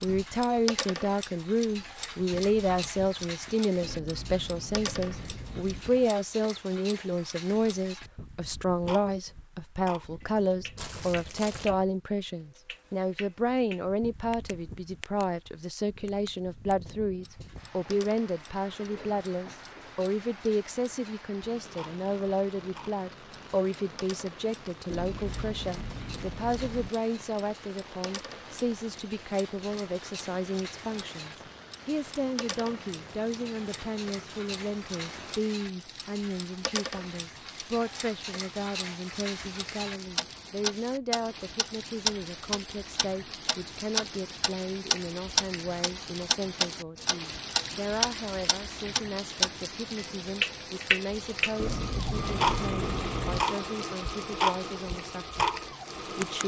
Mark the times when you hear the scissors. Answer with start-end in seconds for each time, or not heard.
3.8-5.8, 24.9-26.9, 51.5-53.5.